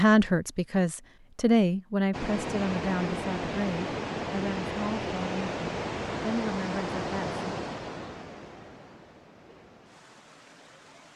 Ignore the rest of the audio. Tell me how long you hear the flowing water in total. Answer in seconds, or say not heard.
9 s.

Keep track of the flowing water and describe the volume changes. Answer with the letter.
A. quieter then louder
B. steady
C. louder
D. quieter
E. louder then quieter
D.